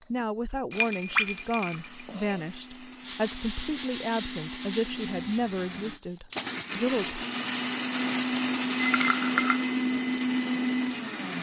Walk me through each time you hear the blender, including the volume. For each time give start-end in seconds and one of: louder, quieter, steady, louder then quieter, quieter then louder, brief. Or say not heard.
0.0-11.3 louder.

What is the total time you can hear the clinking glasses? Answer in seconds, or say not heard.
3 s.